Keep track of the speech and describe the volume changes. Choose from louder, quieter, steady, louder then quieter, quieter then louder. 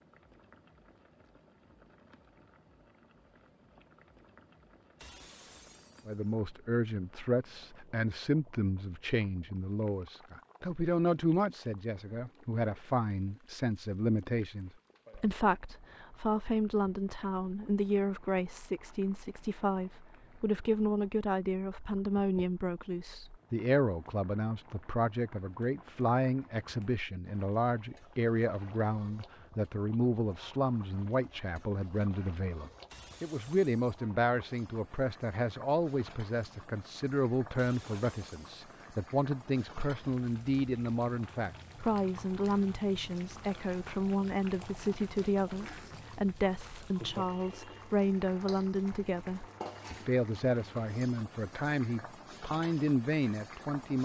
steady.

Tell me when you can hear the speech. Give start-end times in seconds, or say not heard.
6.0-53.9.